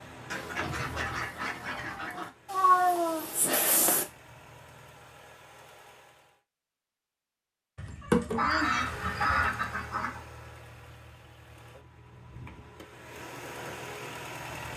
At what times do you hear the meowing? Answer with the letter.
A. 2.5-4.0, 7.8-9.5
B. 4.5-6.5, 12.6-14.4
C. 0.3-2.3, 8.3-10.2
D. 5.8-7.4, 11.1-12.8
A.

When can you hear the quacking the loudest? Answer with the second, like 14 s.
9 s.